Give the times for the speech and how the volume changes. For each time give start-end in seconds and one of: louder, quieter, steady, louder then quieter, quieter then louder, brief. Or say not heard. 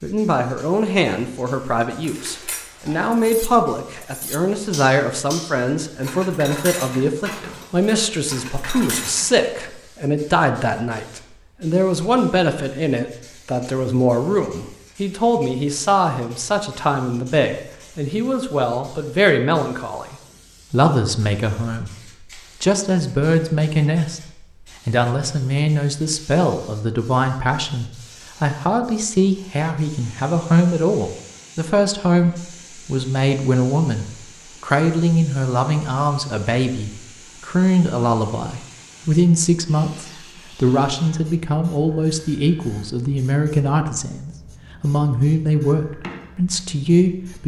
0.0-47.4 steady.